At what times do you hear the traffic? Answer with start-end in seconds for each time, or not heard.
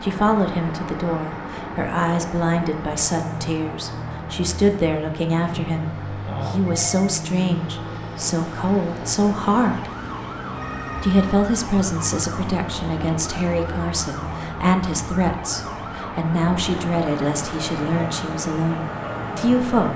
0.0-19.9.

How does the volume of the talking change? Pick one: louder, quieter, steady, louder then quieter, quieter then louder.
steady.